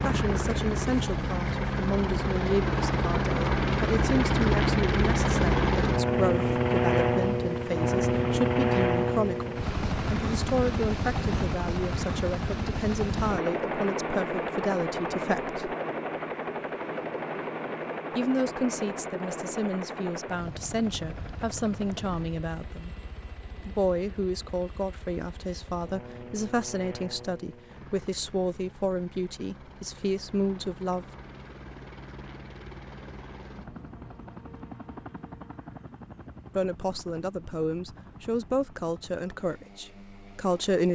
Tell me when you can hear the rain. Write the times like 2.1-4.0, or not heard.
not heard.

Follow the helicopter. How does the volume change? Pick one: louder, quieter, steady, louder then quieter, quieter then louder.
quieter.